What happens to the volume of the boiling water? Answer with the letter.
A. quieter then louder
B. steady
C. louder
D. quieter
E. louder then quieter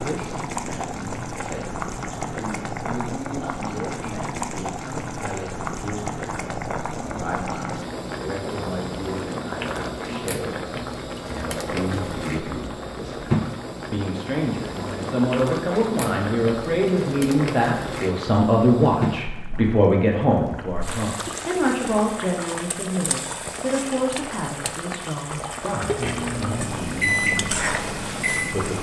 B.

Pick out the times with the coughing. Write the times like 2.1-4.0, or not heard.
not heard.